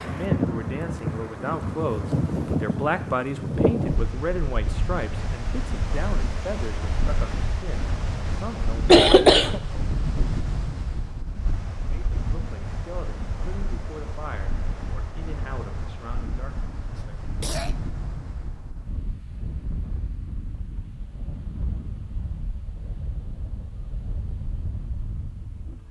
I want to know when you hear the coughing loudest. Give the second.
9 s.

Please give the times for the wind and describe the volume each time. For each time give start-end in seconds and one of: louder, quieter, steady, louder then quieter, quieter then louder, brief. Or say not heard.
0.0-25.8 quieter.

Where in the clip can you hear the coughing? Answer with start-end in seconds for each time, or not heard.
8.2-9.6, 16.9-17.8.